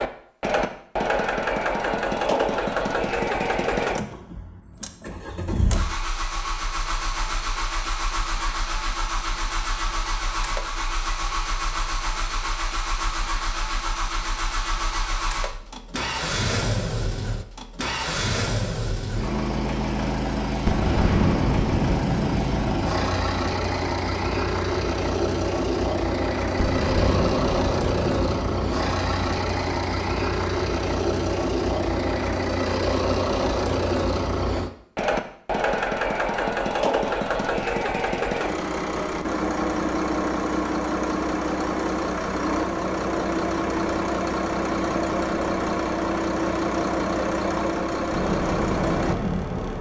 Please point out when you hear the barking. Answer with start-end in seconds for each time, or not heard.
not heard.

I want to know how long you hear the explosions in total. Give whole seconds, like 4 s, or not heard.
5 s.